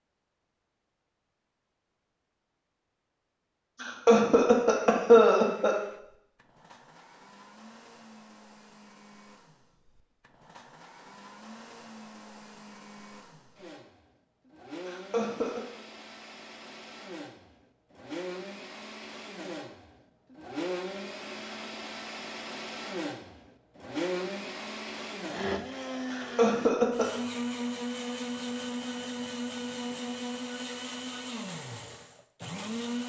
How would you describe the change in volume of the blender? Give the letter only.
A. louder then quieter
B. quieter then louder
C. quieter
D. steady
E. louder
E.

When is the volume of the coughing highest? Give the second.
5 s.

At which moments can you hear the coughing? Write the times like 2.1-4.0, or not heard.
3.8-5.8, 14.8-15.6, 26.1-27.1.